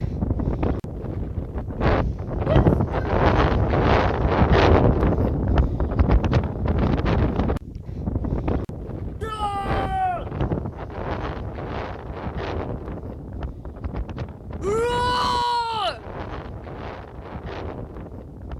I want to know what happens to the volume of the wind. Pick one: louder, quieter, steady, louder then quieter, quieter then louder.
quieter.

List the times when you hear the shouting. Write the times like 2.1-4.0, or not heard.
2.5-3.1, 9.2-10.2, 14.6-16.0.